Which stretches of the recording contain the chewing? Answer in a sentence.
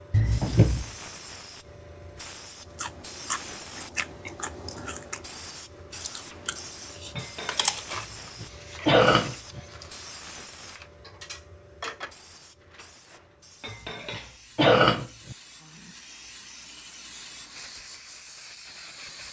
You can hear the chewing from 2.7 to 8.1 s.